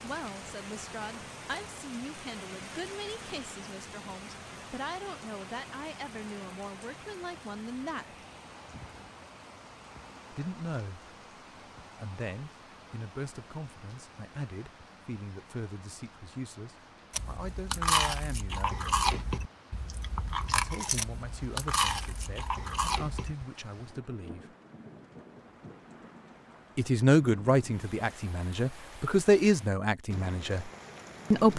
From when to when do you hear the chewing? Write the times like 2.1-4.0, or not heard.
17.1-23.4.